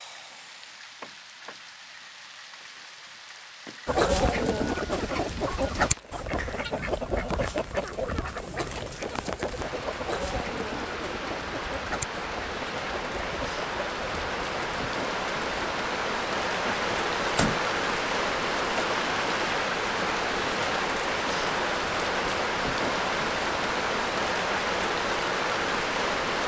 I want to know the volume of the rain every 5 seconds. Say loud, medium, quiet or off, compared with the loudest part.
quiet, quiet, medium, loud, loud, loud.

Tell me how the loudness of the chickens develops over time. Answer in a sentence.
The loudness of the chickens goes down.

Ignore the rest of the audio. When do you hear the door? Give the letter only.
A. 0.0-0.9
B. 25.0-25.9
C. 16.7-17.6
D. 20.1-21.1
C.